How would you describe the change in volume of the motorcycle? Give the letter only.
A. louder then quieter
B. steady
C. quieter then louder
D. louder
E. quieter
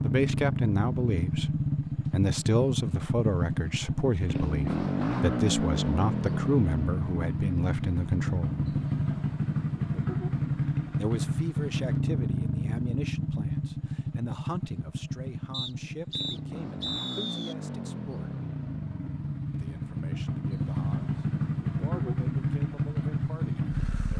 C.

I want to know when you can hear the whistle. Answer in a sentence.
You can hear the whistle from 15.5 to 17.6 s.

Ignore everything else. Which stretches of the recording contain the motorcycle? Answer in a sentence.
You can hear the motorcycle from 0.0 to 24.1 s.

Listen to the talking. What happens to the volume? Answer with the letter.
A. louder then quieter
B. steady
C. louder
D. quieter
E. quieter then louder
D.